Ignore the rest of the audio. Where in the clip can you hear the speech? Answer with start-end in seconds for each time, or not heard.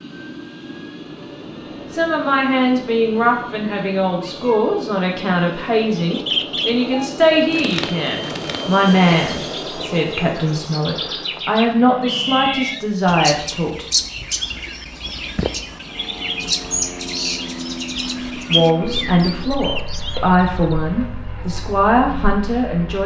1.9-13.8, 18.4-23.0.